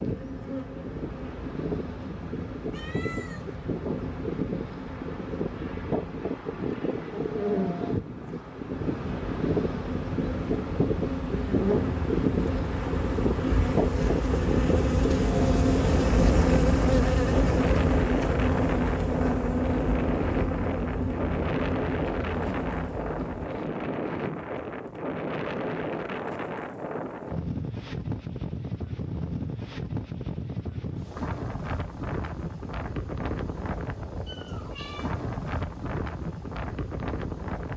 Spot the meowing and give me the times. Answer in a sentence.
You can hear the meowing from 2.7 to 3.5 s and from 34.2 to 35.1 s.